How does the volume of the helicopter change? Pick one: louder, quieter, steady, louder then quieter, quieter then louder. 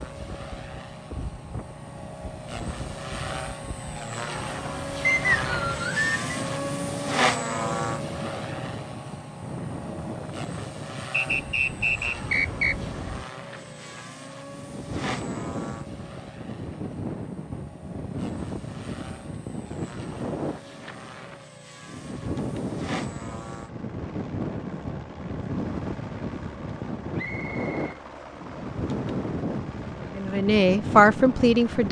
quieter.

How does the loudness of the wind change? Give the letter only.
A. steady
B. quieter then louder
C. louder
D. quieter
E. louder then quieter
C.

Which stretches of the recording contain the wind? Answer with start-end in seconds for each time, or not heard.
0.0-31.8.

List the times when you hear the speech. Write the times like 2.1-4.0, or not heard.
30.1-31.8.